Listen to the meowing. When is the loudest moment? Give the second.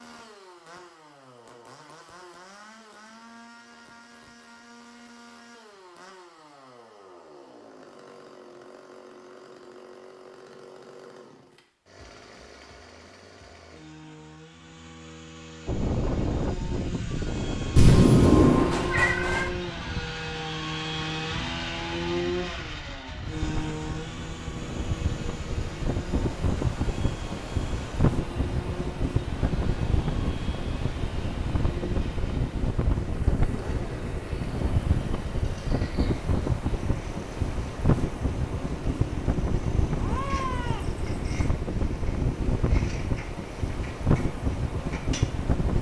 18 s.